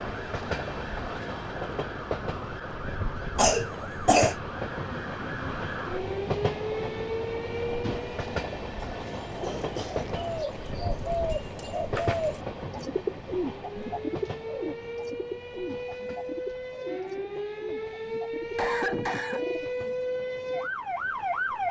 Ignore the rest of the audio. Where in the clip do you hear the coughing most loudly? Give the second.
4 s.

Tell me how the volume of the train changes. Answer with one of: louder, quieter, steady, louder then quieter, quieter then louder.
quieter.